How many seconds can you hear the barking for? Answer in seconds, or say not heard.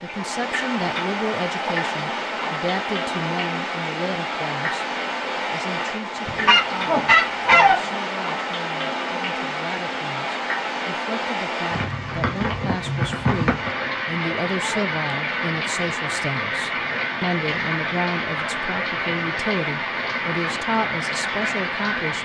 not heard.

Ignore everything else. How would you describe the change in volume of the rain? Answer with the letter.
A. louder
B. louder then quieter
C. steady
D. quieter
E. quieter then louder
C.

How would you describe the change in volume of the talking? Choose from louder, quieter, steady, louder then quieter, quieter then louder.
quieter then louder.